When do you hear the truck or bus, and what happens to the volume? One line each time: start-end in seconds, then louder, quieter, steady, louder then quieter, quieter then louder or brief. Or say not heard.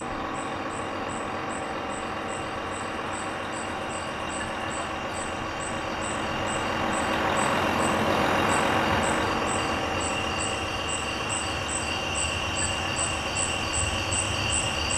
0.0-14.9 louder then quieter.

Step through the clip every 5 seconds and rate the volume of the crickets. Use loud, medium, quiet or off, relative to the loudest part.
quiet, medium, loud.